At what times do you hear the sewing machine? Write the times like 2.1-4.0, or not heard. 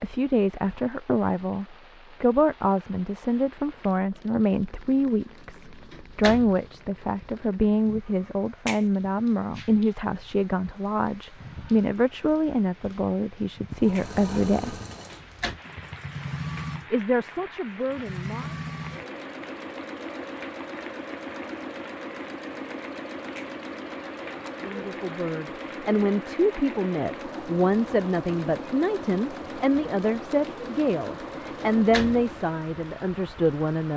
13.7-32.5.